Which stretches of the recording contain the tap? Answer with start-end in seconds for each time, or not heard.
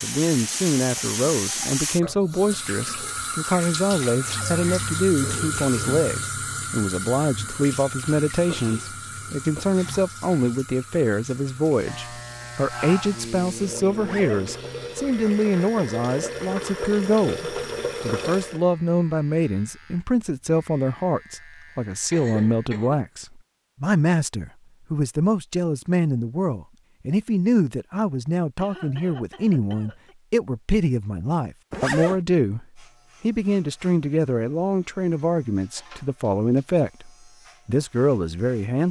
0.0-18.6.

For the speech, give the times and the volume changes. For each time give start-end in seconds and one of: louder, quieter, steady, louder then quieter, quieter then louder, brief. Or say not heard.
0.0-38.8 steady.